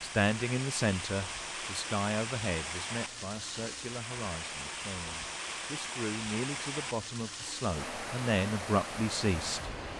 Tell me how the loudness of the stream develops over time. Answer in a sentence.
The loudness of the stream stays about the same.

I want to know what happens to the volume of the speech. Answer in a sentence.
The loudness of the speech goes down, then up.